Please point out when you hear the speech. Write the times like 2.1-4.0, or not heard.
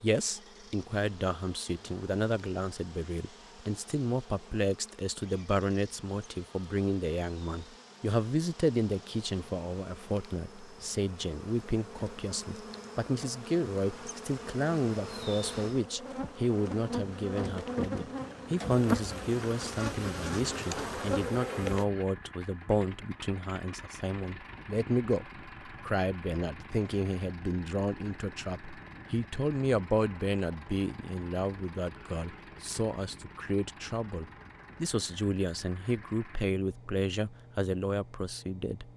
0.0-38.9.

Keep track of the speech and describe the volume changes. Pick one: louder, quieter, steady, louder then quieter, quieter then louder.
steady.